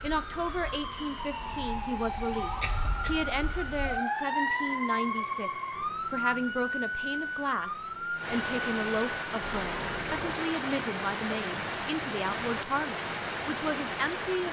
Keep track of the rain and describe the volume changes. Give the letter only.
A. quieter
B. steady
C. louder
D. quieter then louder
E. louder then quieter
C.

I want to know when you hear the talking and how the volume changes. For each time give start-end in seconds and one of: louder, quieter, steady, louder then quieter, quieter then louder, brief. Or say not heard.
0.0-14.4 steady.